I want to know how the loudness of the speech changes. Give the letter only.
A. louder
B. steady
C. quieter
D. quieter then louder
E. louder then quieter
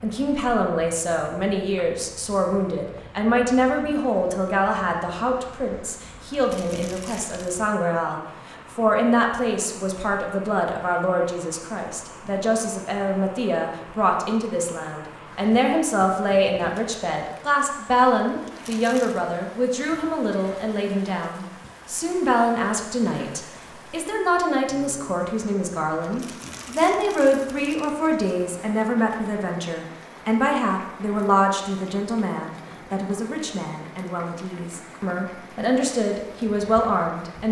B.